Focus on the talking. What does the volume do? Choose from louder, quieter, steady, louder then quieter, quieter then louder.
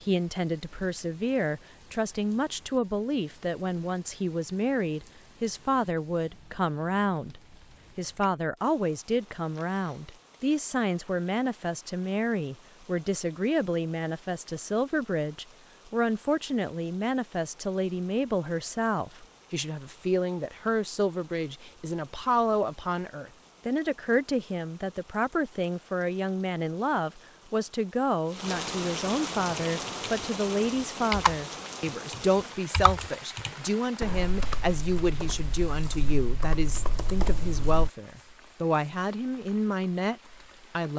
steady.